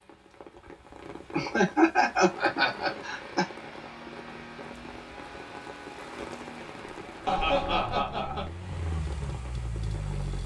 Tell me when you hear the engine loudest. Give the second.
10 s.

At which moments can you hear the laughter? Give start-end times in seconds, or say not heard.
1.3-3.5, 7.2-8.5.